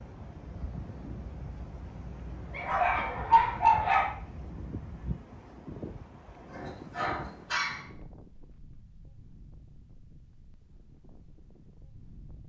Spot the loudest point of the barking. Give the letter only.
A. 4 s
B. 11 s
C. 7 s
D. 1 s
A.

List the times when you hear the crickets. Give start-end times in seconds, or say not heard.
not heard.